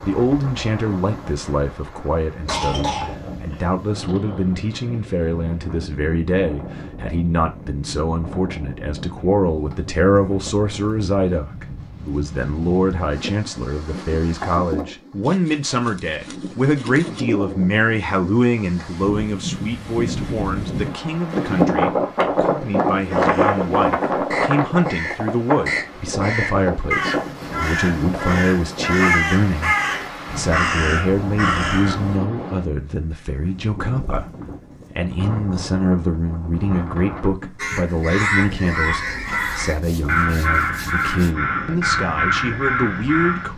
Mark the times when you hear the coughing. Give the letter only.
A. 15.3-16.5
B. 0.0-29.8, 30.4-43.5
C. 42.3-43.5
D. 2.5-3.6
D.